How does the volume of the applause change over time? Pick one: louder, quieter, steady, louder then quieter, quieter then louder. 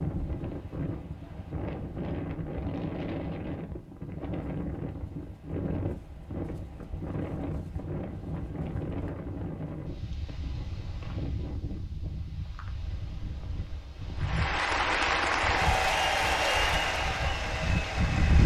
quieter.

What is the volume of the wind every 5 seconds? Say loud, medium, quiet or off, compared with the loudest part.
loud, loud, medium, loud.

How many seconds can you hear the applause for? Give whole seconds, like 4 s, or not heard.
4 s.